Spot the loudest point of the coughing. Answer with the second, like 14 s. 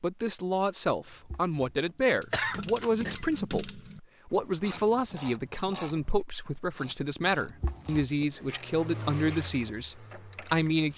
2 s.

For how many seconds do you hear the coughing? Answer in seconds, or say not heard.
3 s.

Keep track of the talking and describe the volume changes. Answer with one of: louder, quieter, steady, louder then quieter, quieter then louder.
steady.